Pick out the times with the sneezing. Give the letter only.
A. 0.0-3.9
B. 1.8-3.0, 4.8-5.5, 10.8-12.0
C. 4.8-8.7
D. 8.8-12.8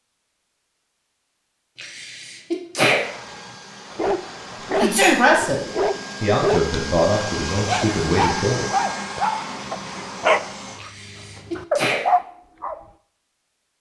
B.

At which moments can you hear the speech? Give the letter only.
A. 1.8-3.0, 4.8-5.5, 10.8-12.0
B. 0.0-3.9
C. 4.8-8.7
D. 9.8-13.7
C.